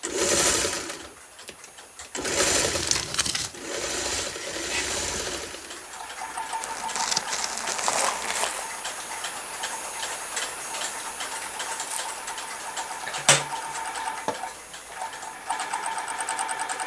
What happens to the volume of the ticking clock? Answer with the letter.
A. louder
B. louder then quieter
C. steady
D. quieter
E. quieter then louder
B.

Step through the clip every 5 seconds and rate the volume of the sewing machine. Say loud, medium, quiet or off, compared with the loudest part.
loud, medium, medium, loud.